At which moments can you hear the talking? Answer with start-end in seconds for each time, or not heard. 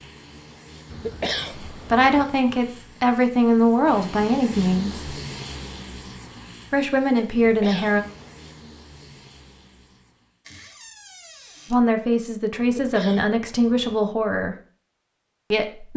1.7-5.1, 6.7-8.1, 11.7-14.6, 15.5-15.9.